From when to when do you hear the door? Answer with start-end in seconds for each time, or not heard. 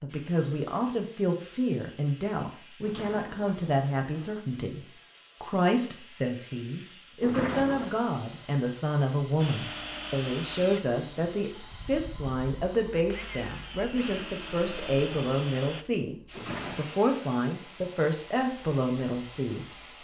2.8-4.5, 7.2-7.9, 16.3-17.0.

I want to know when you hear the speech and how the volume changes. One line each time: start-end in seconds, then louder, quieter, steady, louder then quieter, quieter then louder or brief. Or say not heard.
0.0-19.8 steady.